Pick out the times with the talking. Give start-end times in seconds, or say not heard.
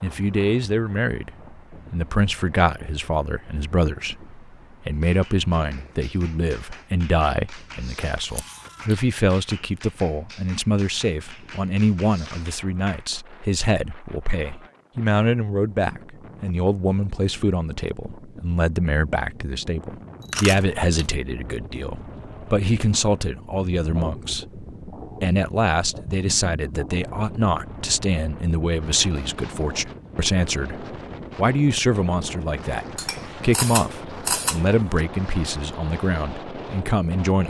0.0-37.4.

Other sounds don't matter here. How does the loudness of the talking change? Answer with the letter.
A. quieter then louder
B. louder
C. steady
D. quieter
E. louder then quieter
C.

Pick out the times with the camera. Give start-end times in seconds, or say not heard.
8.2-8.9, 20.2-21.1, 33.0-35.0.